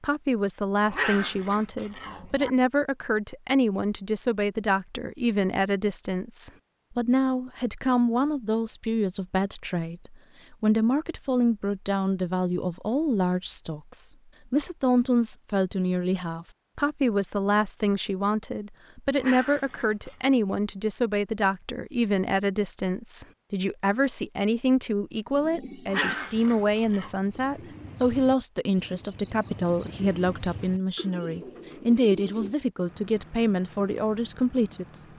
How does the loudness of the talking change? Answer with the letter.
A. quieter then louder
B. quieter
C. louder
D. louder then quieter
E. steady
E.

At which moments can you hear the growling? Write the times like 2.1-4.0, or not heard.
0.8-2.5, 19.1-20.4, 25.9-27.1.